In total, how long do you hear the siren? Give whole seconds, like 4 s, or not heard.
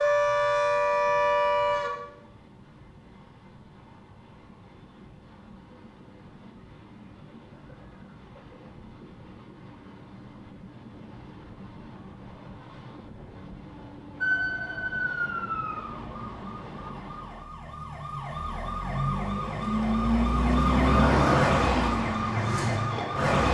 11 s.